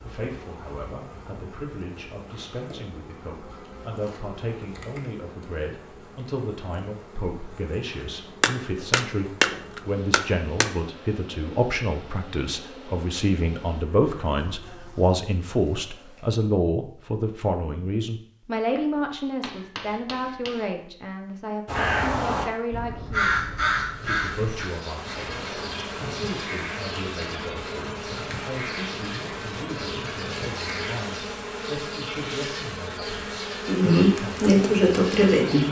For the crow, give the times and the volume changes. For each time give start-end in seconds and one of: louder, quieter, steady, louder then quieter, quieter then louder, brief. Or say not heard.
21.6-31.1 quieter.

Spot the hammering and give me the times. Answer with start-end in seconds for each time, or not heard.
8.4-10.8, 18.8-20.7.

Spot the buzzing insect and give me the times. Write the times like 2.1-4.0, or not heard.
0.0-16.4, 23.9-35.6.